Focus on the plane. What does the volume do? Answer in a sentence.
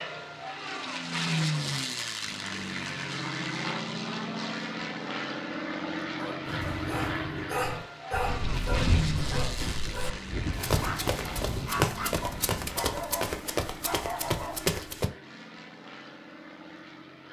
The volume of the plane goes down.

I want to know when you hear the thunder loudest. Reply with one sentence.
The volume of the thunder peaks at 9 seconds.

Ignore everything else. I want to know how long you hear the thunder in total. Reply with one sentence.
The thunder can be heard for 5 seconds in total.